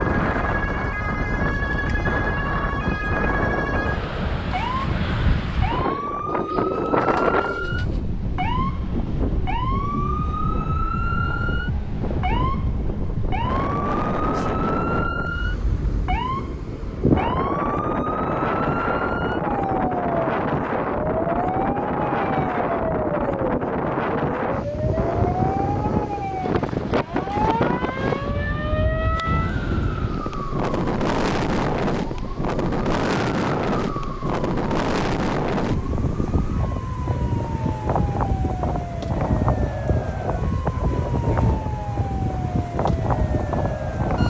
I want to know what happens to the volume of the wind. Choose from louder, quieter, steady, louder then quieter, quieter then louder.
steady.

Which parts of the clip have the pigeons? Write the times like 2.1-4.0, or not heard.
6.2-8.1.